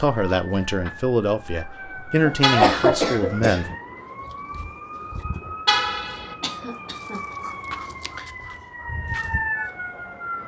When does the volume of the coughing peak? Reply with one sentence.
The loudest moment of the coughing is at 3 seconds.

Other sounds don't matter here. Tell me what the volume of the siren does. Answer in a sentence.
The volume of the siren goes up.